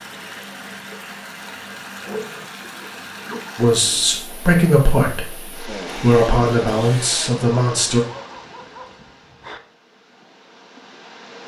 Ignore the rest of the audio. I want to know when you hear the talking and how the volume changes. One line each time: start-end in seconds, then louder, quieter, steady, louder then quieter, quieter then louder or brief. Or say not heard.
3.5-8.0 steady.